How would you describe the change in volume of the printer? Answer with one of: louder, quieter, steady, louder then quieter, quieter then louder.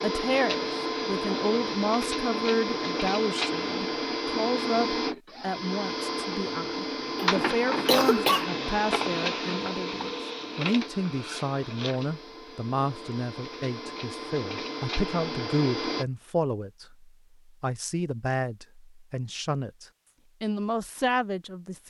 quieter.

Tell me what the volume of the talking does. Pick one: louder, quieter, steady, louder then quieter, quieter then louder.
steady.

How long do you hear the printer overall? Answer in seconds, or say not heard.
16 s.